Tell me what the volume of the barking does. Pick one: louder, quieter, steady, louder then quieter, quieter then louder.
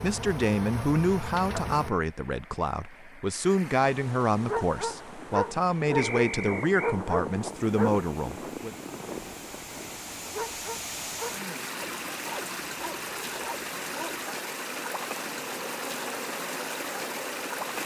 quieter.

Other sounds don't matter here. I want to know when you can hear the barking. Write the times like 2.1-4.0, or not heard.
4.4-14.2.